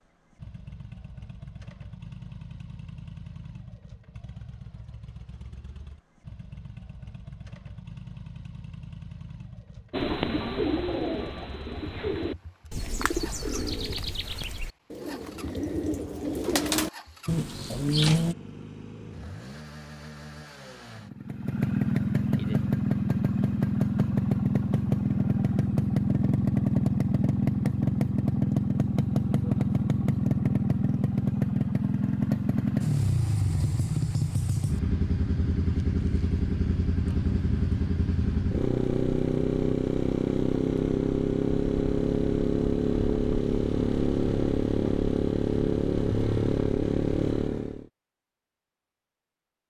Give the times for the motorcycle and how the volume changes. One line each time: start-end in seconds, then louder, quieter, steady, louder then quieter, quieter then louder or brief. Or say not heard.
0.0-47.9 louder.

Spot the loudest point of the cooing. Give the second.
18 s.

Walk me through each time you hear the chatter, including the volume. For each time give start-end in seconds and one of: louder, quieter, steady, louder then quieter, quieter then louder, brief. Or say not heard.
not heard.